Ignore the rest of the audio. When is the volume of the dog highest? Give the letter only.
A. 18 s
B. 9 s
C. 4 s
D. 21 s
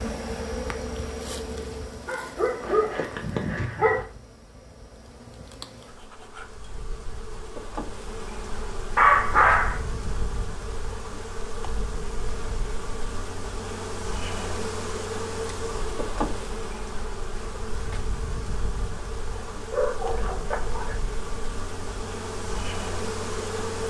B.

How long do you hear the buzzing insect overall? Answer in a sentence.
The buzzing insect can be heard for 24 seconds in total.